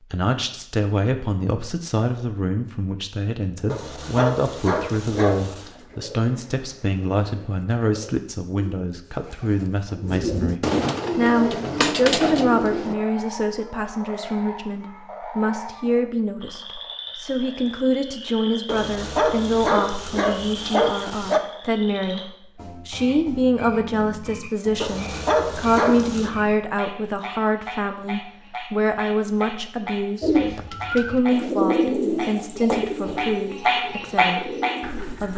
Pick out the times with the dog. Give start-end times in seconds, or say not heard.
3.6-5.7, 18.6-21.4, 24.8-26.3.